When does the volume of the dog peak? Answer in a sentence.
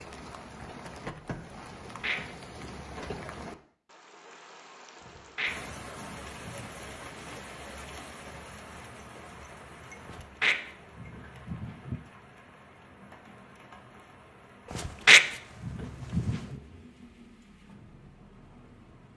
The loudest moment of the dog is at 15 seconds.